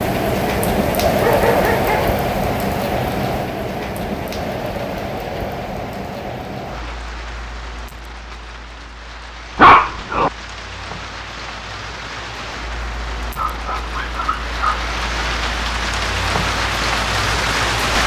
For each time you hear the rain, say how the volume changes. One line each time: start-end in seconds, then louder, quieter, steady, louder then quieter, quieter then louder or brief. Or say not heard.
0.0-18.0 quieter then louder.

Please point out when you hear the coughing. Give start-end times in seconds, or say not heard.
not heard.